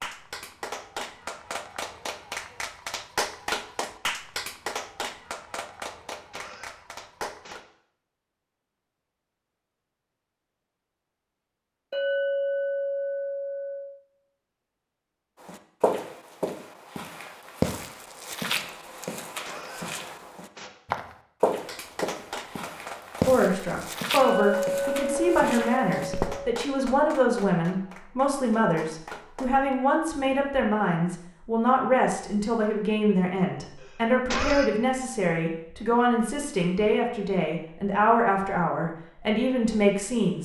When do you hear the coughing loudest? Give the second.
34 s.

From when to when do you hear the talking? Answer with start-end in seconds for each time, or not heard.
23.2-40.4.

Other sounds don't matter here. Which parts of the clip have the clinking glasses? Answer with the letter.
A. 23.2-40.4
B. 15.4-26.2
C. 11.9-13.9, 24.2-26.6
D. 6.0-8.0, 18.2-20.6
C.